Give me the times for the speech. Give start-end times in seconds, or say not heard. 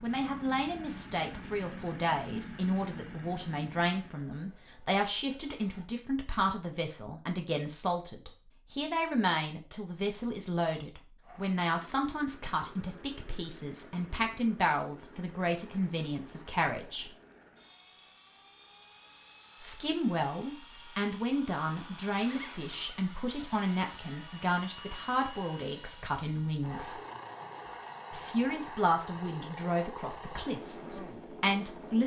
0.0-17.1, 19.6-26.9, 28.1-32.0.